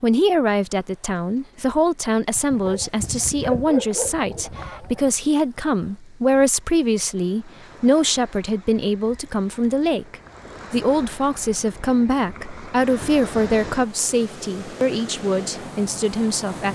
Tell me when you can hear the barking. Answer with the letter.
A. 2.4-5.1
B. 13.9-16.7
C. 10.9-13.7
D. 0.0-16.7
A.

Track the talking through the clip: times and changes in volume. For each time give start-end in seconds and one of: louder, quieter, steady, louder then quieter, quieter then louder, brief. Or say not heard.
0.0-16.7 steady.